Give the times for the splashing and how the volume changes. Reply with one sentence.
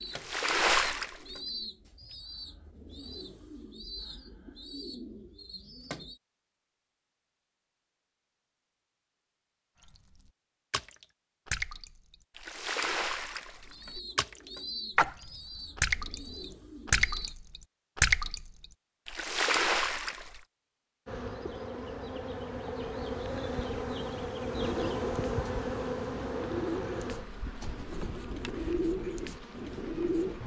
You can hear the splashing briefly from 0.0 to 2.1 s; and from 9.8 to 20.4 s, getting louder.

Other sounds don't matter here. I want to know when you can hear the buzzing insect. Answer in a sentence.
The buzzing insect can be heard from 21.1 to 30.4 s.